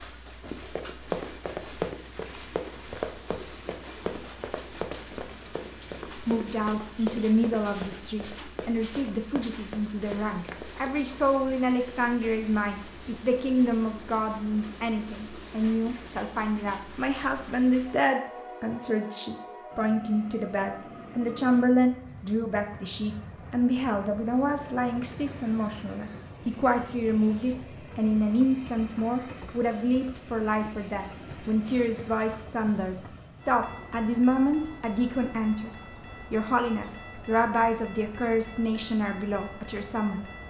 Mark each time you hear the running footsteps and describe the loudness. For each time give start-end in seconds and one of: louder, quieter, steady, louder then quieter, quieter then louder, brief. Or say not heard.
0.4-10.9 quieter.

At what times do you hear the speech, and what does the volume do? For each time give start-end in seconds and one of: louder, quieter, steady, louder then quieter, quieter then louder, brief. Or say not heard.
6.0-40.3 steady.